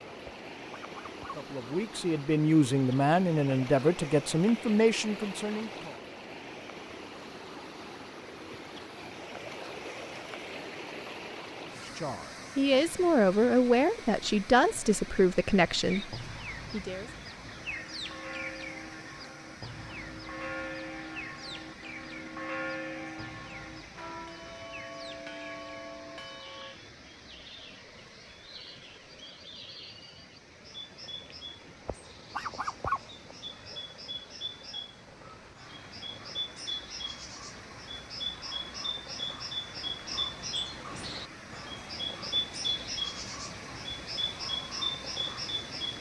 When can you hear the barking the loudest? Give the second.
33 s.